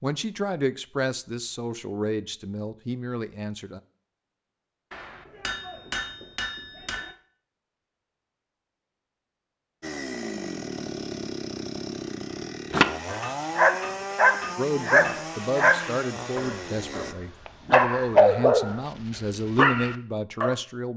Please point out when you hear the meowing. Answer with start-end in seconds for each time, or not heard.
not heard.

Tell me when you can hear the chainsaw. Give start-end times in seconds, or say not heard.
9.8-17.1.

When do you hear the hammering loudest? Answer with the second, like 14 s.
6 s.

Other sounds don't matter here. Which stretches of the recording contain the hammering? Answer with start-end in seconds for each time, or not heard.
4.9-7.2, 13.2-15.2.